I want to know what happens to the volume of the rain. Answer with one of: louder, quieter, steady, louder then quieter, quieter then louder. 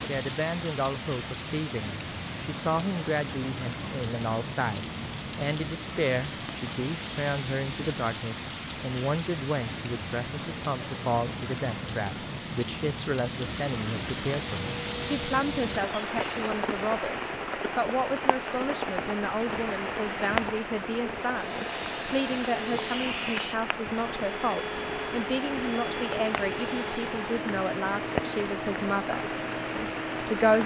steady.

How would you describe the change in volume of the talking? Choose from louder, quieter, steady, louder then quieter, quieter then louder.
steady.